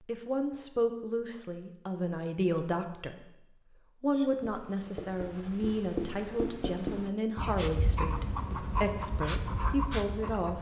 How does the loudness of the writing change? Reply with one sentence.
The volume of the writing goes up.